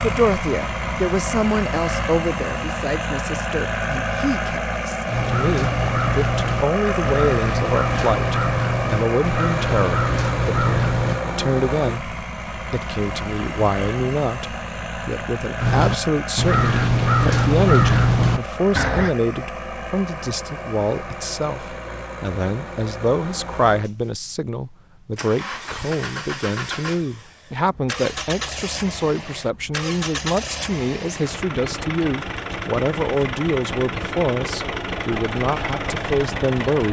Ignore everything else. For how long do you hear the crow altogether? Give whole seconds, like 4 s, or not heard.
10 s.